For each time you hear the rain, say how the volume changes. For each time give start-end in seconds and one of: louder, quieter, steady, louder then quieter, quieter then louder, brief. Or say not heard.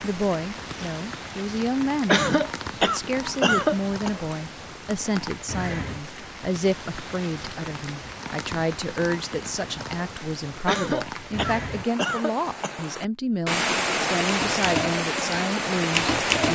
0.0-16.5 louder.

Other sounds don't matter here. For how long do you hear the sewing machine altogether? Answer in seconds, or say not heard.
not heard.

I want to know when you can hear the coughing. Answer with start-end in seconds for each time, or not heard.
2.0-4.1, 10.7-12.8.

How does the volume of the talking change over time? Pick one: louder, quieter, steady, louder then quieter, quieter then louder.
steady.